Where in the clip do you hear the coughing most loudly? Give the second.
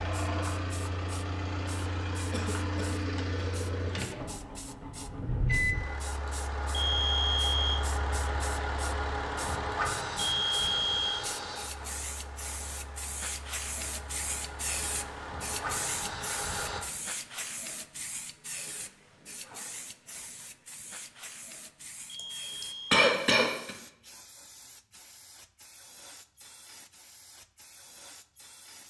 23 s.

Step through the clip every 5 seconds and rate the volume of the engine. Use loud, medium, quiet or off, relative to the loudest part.
loud, loud, medium, loud, off, off.